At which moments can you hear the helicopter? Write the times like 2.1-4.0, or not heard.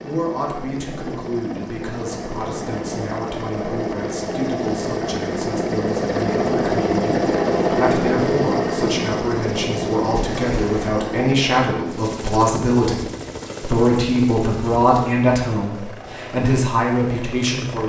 0.0-17.8.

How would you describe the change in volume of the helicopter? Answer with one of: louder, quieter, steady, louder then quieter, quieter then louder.
louder then quieter.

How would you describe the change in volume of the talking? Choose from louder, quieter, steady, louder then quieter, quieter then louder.
louder.